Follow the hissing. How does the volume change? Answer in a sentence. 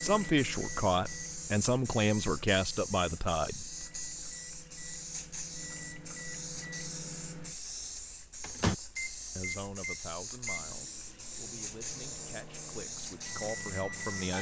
The loudness of the hissing stays about the same.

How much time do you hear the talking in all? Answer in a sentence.
The talking can be heard for 9 seconds in total.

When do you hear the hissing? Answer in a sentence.
You can hear the hissing from 0.0 to 14.3 s.